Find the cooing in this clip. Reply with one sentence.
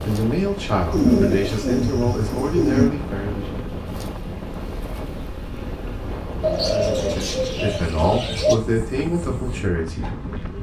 The cooing can be heard from 0.9 to 2.9 s and from 6.4 to 8.6 s.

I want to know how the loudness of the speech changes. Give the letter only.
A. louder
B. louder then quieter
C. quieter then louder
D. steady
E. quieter
C.